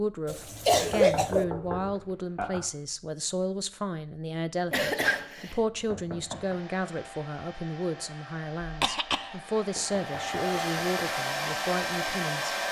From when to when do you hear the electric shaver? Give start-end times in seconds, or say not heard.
not heard.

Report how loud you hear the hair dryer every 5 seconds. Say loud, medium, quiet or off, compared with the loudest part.
off, quiet, loud.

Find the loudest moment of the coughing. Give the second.
1 s.